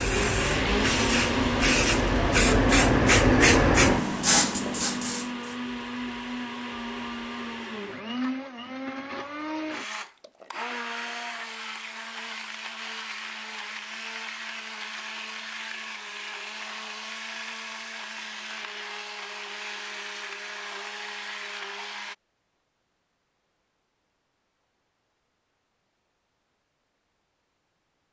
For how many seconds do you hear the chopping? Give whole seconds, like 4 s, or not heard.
not heard.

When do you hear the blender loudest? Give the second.
1 s.